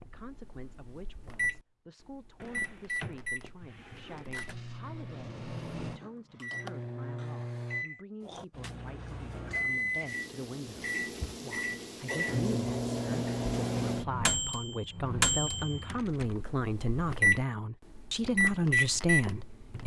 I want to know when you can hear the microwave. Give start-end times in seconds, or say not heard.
0.0-19.8.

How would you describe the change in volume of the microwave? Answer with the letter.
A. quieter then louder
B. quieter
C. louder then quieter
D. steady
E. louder
E.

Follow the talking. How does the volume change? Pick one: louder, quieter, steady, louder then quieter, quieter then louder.
louder.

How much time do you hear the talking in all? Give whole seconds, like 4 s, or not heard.
20 s.